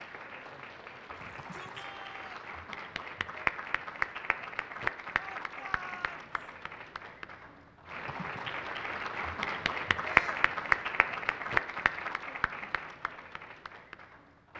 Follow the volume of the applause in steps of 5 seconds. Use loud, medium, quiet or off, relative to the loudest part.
medium, medium, loud.